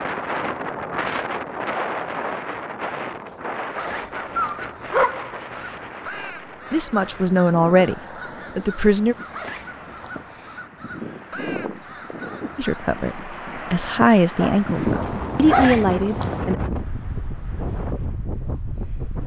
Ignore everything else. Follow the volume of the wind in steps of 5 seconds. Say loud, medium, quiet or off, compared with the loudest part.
loud, medium, loud, loud.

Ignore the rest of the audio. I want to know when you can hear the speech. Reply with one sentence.
The speech can be heard from 6.7 to 9.2 s and from 12.6 to 16.6 s.